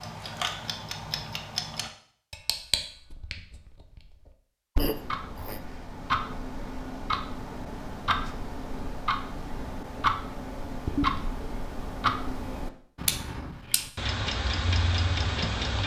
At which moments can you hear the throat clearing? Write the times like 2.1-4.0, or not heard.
4.8-5.6.